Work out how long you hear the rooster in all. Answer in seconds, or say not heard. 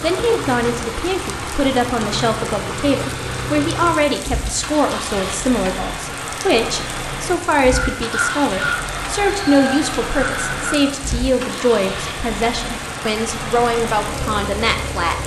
3 s.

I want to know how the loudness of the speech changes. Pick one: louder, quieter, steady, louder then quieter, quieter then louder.
steady.